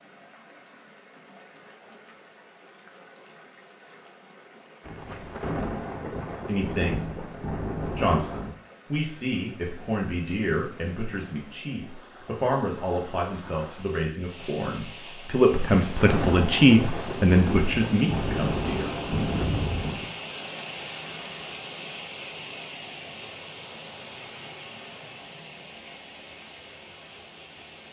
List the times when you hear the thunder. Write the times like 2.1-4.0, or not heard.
4.8-8.6, 15.5-20.1.